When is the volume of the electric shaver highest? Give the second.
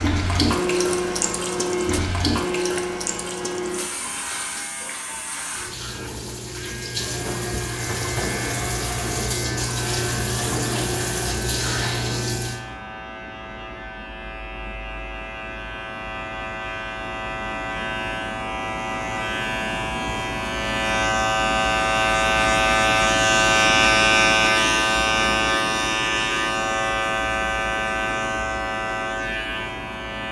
24 s.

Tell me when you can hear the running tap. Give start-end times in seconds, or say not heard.
0.0-12.6.